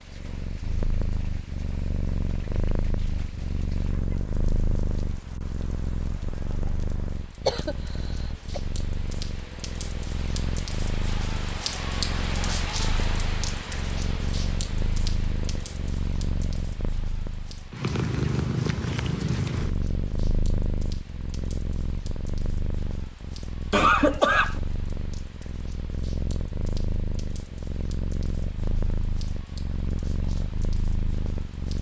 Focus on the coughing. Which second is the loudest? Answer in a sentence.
The volume of the coughing peaks at 24 seconds.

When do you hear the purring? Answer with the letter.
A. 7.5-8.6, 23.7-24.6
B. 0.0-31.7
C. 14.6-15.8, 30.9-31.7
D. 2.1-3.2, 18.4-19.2
B.